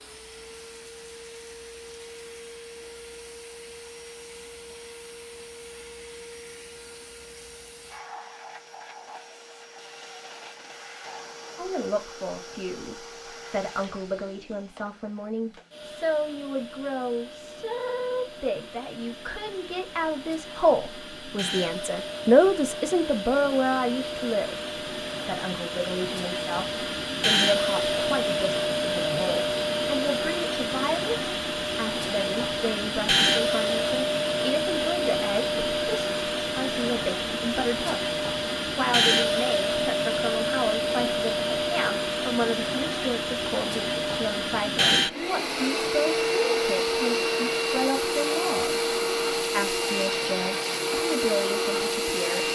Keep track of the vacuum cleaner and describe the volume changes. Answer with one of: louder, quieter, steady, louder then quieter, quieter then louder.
louder.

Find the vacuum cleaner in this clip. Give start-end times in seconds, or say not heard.
0.0-52.5.